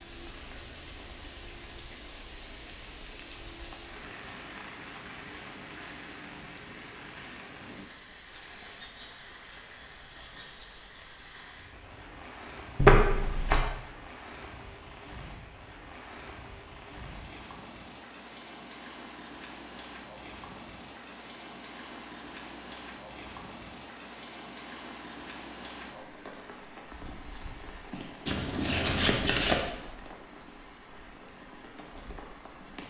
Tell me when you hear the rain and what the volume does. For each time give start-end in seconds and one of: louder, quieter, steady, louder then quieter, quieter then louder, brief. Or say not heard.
0.0-32.8 steady.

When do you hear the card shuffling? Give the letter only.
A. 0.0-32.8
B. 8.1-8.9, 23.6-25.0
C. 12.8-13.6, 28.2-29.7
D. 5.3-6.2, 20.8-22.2
C.